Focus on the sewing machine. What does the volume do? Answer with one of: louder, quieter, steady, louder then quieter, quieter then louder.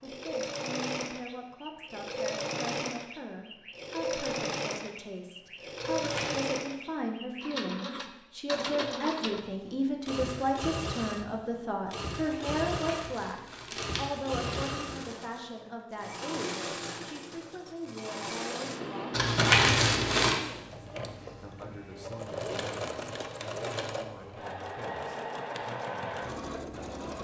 steady.